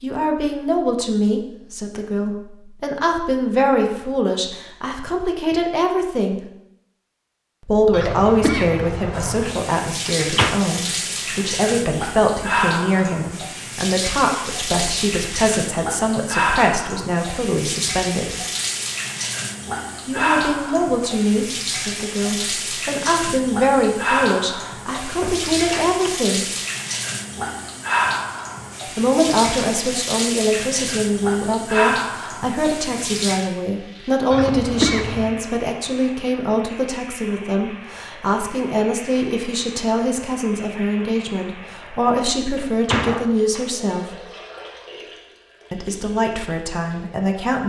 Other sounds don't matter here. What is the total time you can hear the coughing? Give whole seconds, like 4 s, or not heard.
3 s.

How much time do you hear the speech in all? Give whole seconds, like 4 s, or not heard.
41 s.